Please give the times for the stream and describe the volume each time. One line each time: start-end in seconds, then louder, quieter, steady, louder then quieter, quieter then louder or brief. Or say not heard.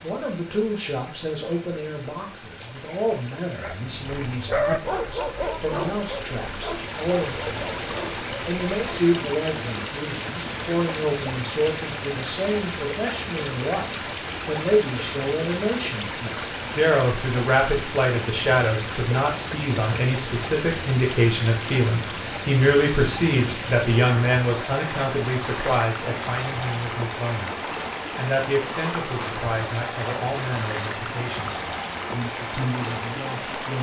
0.0-33.7 louder.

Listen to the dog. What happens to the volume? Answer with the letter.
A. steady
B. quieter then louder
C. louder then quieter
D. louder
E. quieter
E.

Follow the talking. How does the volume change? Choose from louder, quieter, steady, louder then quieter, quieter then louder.
louder then quieter.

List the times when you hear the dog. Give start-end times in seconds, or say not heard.
3.6-9.0.